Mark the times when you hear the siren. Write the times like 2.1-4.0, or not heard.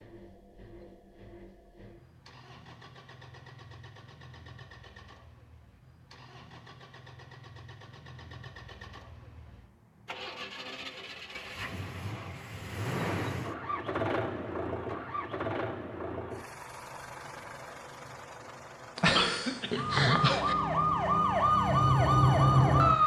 19.7-23.0.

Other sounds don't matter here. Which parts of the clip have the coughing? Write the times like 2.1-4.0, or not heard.
18.9-20.6.